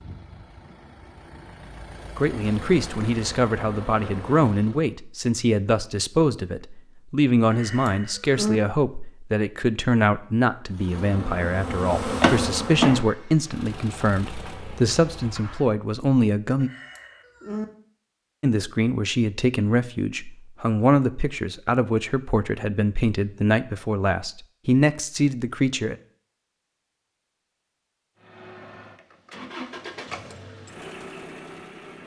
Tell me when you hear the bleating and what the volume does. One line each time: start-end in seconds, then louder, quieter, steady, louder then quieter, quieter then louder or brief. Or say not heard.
not heard.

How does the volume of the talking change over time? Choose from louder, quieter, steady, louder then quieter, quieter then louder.
steady.